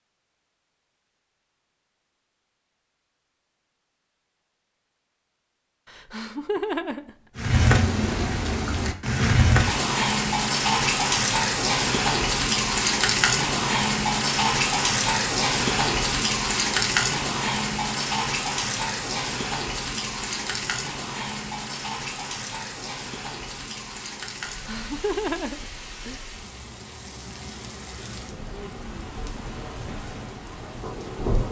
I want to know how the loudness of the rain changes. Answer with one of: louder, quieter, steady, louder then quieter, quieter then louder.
quieter.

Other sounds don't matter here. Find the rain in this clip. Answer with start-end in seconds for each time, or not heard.
7.3-31.4.